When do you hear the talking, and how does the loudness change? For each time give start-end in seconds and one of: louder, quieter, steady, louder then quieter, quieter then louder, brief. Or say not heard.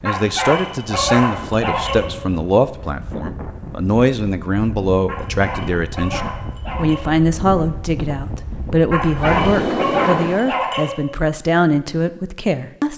0.0-12.9 steady.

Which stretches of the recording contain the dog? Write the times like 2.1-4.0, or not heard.
0.1-2.0, 5.0-7.1, 8.9-10.9.